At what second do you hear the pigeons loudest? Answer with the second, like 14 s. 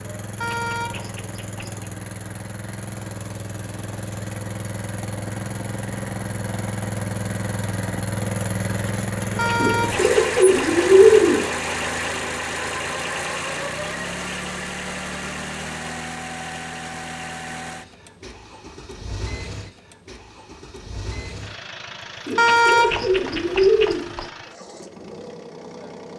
11 s.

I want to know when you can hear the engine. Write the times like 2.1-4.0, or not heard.
0.0-26.1.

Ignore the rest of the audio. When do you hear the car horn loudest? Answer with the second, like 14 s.
23 s.